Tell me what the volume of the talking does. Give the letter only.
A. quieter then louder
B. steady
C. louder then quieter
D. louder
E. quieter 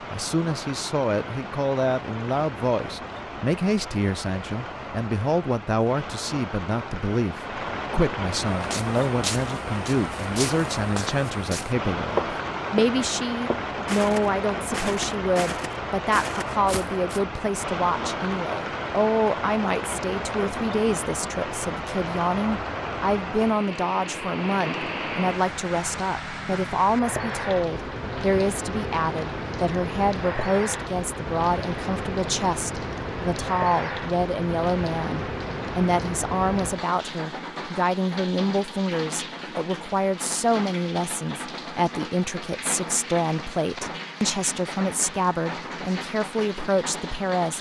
B.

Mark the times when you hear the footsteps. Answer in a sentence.
The footsteps can be heard from 8.5 to 17.2 s.